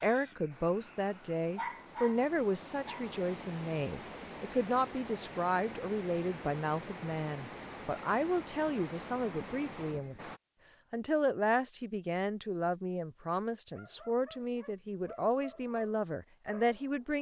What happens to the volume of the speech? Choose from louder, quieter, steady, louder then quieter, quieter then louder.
steady.